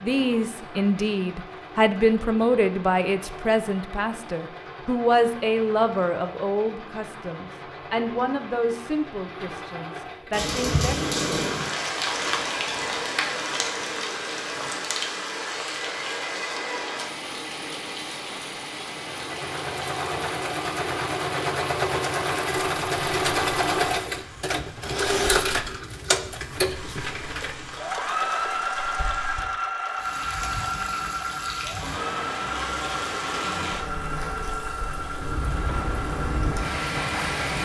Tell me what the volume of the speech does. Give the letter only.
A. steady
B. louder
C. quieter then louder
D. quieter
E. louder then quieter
D.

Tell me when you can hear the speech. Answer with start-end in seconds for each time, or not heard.
0.0-10.9.